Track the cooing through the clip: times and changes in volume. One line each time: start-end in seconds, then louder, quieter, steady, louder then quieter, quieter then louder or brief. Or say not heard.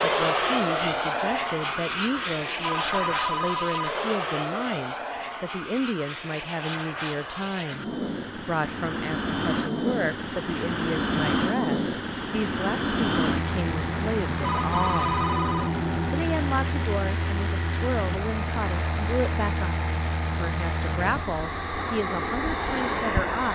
not heard.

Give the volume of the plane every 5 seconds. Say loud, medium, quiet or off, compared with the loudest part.
loud, medium, loud, loud, loud.